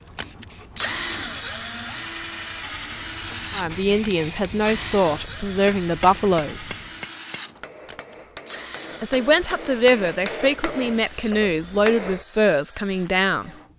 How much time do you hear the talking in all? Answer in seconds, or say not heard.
8 s.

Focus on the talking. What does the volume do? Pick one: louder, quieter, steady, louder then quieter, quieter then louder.
steady.